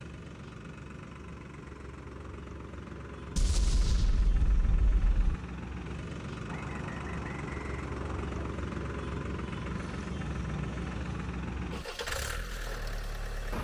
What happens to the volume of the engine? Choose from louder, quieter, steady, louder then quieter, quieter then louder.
louder.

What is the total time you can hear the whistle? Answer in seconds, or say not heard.
2 s.